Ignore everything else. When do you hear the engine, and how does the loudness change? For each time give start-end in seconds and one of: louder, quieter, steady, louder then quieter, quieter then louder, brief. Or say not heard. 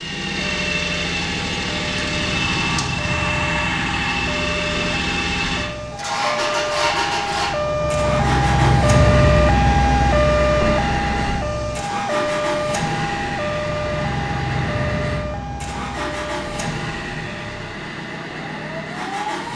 0.0-19.5 quieter.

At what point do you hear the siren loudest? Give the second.
9 s.